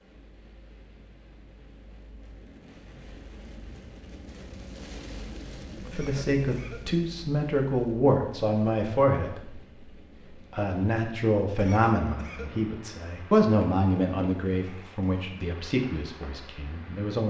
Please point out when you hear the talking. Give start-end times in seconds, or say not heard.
5.8-9.8, 10.5-17.2.